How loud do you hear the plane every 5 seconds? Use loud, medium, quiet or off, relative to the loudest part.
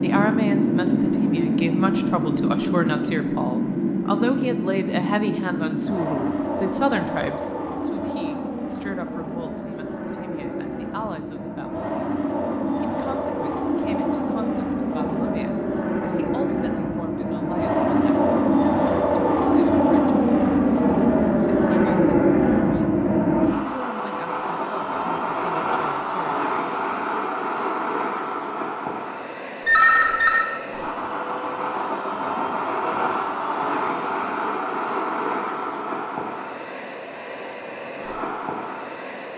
loud, medium, medium, loud, loud, medium, medium, medium.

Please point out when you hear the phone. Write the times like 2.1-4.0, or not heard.
29.6-30.5.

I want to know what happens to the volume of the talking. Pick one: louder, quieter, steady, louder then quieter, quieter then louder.
quieter.